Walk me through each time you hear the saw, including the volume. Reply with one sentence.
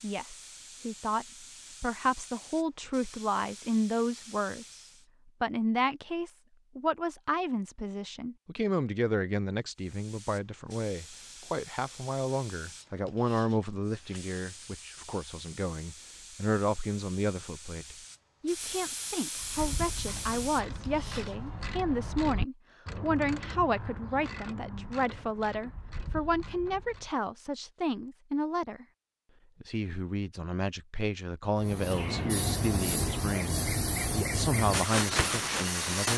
The saw can't be heard in this clip.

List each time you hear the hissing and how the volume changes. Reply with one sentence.
You can hear the hissing from 0.0 to 5.0 s, at a steady volume; from 9.8 to 21.6 s, getting louder; and from 31.6 to 36.1 s, at a steady volume.